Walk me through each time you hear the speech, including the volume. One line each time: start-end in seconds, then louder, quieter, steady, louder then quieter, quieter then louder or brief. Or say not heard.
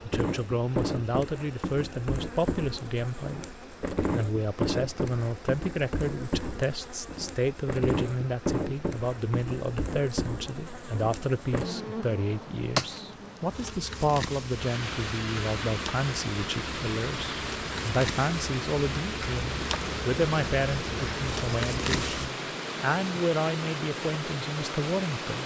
0.0-25.4 steady.